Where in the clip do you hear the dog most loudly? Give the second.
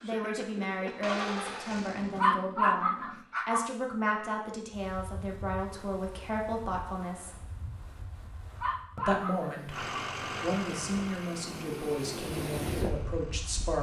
3 s.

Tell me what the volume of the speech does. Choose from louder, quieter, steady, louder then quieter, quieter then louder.
steady.